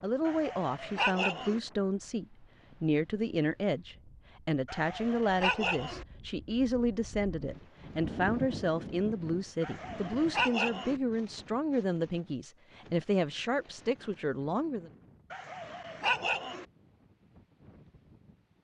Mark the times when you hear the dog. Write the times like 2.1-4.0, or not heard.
0.2-1.6, 4.7-6.0, 9.6-11.0, 15.3-16.6.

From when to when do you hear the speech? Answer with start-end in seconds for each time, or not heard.
0.0-14.9.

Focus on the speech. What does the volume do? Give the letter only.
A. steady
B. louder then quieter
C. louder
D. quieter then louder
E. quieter
A.